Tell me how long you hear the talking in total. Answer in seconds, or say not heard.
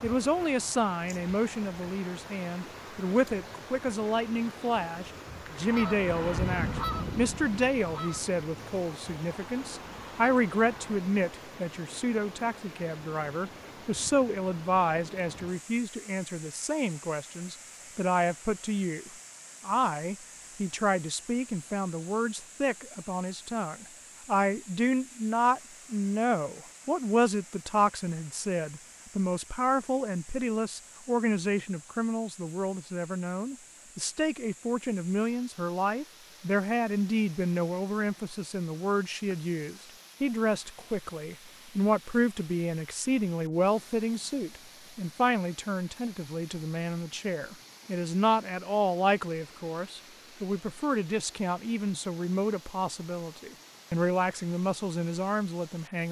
56 s.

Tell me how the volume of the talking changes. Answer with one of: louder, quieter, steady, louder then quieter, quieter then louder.
steady.